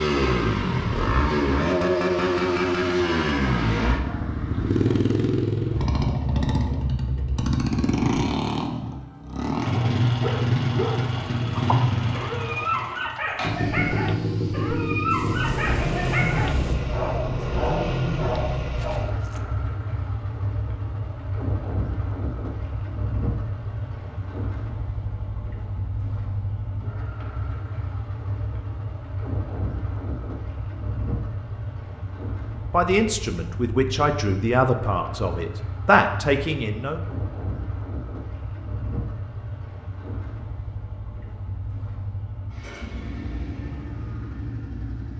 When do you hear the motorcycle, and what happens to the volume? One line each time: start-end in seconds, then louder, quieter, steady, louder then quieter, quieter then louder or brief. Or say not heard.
0.0-45.1 quieter.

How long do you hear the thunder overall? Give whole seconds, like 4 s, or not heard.
2 s.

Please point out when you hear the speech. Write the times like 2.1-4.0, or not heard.
32.7-37.0.